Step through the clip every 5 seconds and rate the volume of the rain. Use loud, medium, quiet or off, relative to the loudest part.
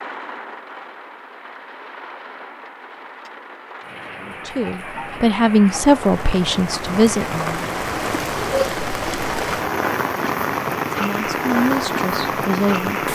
quiet, loud, loud.